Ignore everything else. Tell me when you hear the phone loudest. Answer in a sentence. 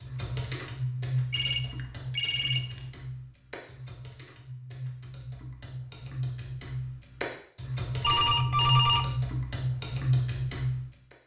The volume of the phone peaks at 9 seconds.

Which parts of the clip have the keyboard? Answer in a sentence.
The keyboard can be heard from 0.0 to 10.9 s.